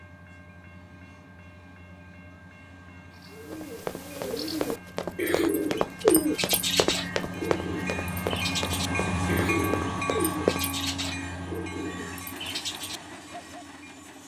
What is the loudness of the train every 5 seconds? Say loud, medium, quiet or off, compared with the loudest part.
quiet, loud, loud.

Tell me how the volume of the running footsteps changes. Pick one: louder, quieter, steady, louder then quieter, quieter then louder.
louder then quieter.